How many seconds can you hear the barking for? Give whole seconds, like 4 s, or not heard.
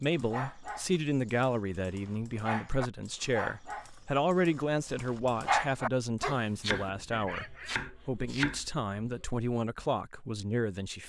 8 s.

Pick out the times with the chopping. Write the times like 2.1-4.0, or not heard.
6.6-9.2.